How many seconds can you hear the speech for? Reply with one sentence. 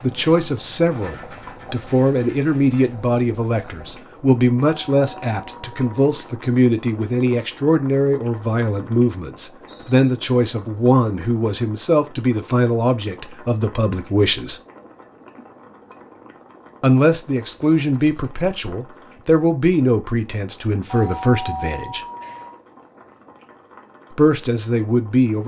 The speech can be heard for 21 seconds in total.